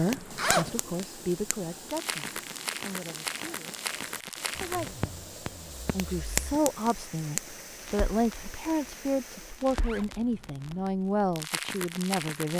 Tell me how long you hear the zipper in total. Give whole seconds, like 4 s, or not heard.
4 s.